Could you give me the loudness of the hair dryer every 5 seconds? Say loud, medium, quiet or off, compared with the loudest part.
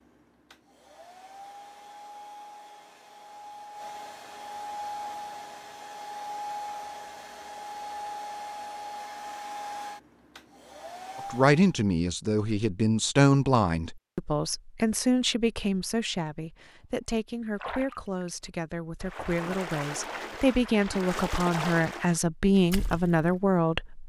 medium, loud, medium, off, off.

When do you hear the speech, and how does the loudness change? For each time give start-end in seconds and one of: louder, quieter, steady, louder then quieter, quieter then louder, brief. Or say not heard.
11.2-24.0 quieter then louder.